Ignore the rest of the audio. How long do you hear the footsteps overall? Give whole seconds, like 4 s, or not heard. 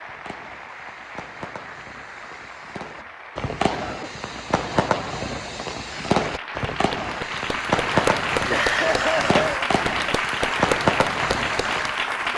not heard.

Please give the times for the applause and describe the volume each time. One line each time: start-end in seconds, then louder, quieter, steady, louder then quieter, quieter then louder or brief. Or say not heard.
0.0-12.3 louder.